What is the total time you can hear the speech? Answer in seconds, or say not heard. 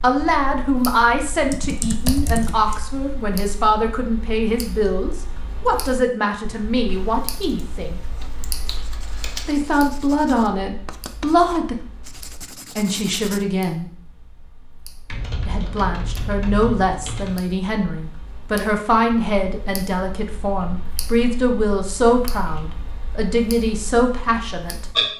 21 s.